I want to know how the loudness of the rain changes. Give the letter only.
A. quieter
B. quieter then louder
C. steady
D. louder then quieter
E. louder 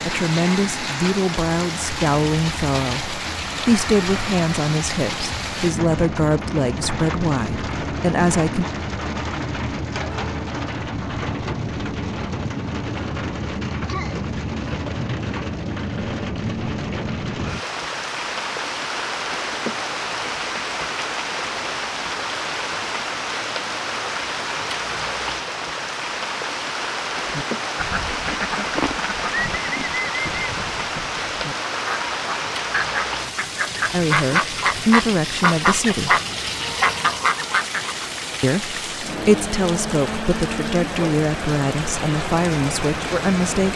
C.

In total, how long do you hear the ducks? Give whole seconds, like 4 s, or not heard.
11 s.